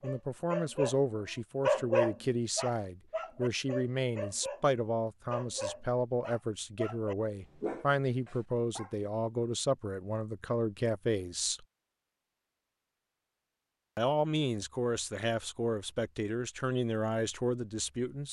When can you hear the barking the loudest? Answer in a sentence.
The loudest moment of the barking is at 2 seconds.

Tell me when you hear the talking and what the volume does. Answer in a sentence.
The talking can be heard from 0.0 to 11.7 s, at a steady volume; and from 13.9 to 18.2 s, at a steady volume.